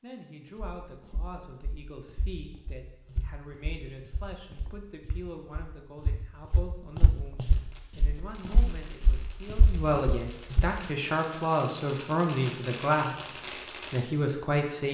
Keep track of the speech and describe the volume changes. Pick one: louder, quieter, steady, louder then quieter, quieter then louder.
louder.